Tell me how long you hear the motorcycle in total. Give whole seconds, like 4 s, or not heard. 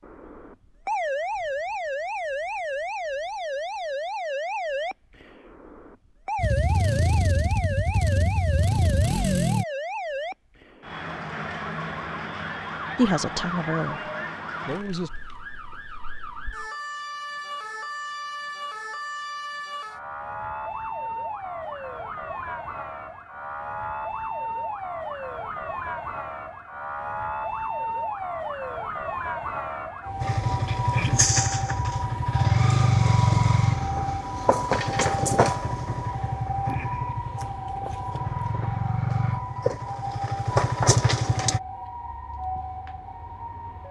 15 s.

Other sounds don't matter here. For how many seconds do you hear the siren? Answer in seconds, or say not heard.
44 s.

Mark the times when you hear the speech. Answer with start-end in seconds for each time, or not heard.
12.9-15.1.